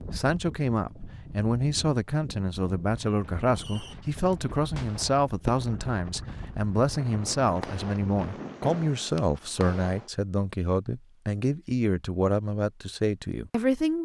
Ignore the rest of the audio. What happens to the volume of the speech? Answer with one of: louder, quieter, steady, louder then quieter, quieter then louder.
steady.